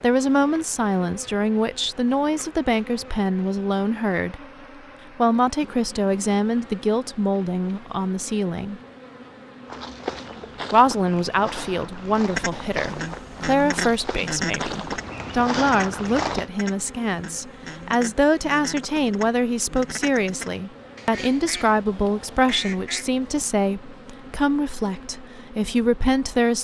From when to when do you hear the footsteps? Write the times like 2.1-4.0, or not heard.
9.7-16.5.